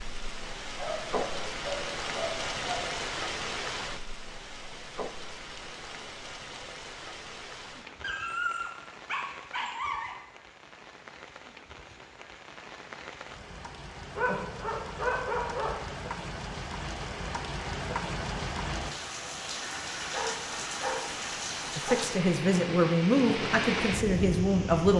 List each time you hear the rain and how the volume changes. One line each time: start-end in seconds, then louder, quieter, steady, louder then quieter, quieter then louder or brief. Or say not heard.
0.0-24.9 quieter then louder.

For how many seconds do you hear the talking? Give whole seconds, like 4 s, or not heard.
3 s.